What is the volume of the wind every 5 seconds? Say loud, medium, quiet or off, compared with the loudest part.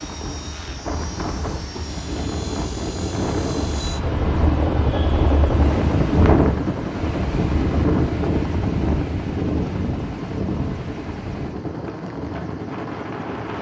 medium, loud, medium.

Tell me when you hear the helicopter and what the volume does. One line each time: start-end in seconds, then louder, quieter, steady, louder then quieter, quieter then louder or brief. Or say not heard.
0.0-13.5 louder then quieter.